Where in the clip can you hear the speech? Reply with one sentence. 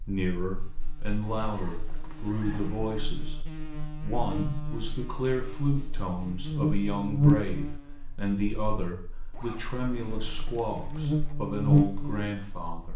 You can hear the speech from 0.0 to 12.9 s.